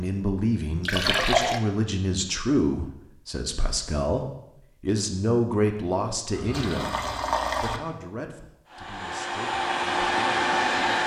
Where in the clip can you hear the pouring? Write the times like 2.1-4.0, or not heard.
0.8-1.6, 6.3-7.8.